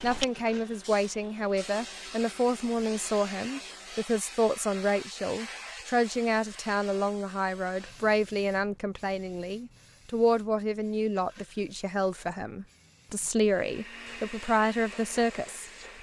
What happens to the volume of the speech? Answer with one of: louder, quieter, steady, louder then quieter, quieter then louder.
steady.